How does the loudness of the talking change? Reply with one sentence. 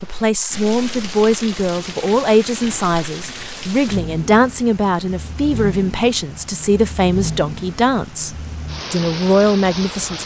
The volume of the talking stays about the same.